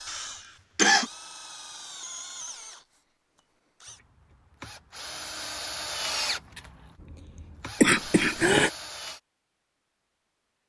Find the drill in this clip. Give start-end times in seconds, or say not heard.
0.0-9.2.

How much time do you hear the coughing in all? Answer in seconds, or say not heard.
2 s.